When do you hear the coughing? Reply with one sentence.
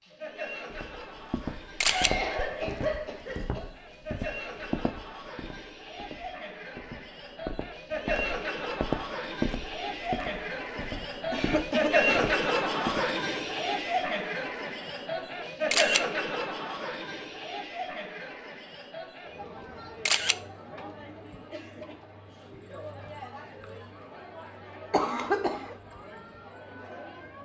The coughing can be heard from 1.9 to 3.7 s, from 11.3 to 12.2 s and from 24.9 to 25.8 s.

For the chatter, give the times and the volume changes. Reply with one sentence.
You can hear the chatter from 0.0 to 27.3 s, getting louder then quieter.